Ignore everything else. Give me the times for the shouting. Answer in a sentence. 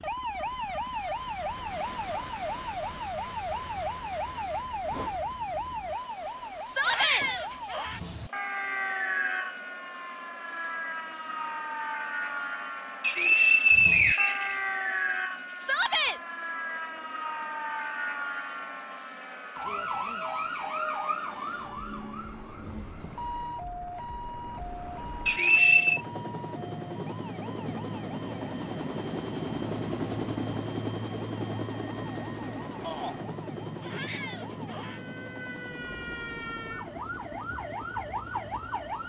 The shouting can be heard from 6.7 to 7.2 s, from 15.6 to 16.2 s and from 32.8 to 33.2 s.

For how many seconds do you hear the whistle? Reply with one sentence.
You can hear the whistle for 2 seconds altogether.